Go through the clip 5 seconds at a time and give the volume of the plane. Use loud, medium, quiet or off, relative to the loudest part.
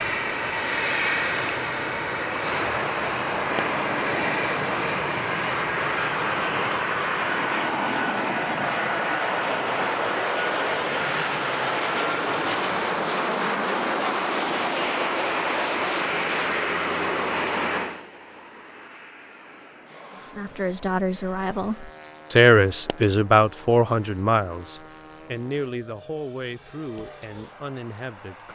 loud, loud, loud, loud, quiet, quiet.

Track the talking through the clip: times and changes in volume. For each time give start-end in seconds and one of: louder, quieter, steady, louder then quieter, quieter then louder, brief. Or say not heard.
20.3-28.5 louder then quieter.